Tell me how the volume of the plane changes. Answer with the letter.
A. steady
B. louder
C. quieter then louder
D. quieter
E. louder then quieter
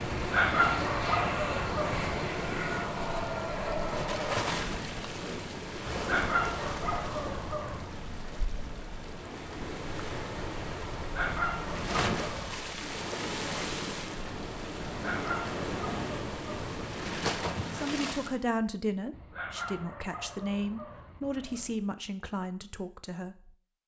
A.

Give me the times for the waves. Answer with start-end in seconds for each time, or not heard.
0.0-18.4.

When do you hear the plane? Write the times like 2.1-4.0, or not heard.
0.0-4.5.